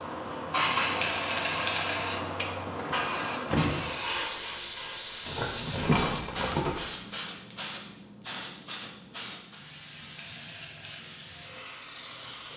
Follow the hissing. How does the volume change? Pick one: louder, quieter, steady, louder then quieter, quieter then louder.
quieter.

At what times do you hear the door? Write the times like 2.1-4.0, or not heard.
2.8-4.2.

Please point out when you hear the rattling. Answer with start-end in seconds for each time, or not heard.
1.0-2.0, 5.2-6.8, 10.2-11.0.